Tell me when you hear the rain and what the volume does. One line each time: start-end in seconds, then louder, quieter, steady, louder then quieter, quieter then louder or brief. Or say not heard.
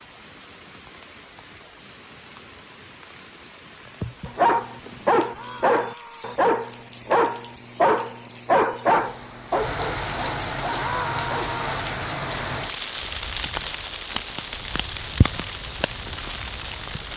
0.0-17.1 louder.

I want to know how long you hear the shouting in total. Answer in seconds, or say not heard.
2 s.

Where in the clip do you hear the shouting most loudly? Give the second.
11 s.